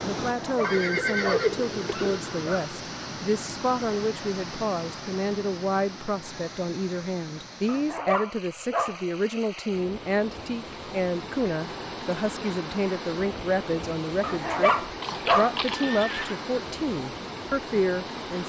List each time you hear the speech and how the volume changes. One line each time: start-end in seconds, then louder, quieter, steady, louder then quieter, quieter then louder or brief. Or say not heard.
0.0-18.4 steady.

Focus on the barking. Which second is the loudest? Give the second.
15 s.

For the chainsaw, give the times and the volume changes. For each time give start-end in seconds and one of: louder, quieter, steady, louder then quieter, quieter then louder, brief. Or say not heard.
not heard.